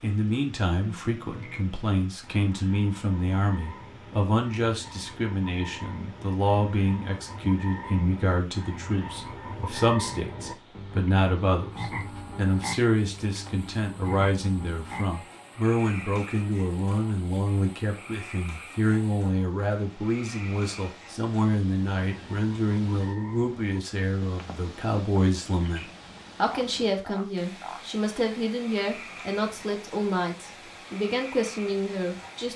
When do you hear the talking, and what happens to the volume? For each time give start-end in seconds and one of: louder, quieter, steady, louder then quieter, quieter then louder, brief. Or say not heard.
0.0-32.5 steady.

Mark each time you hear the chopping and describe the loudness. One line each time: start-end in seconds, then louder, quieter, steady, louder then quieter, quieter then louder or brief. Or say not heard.
not heard.